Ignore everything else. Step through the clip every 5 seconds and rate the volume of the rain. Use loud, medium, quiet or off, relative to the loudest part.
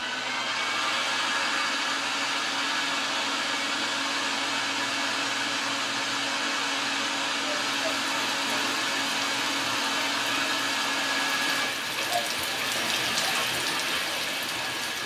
off, medium, loud.